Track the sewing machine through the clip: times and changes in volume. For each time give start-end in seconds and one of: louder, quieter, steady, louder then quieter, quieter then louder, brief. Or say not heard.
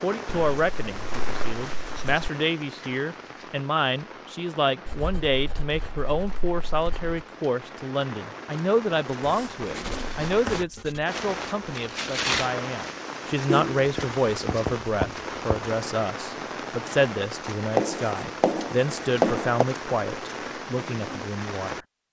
not heard.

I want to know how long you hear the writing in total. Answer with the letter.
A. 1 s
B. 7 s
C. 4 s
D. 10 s
D.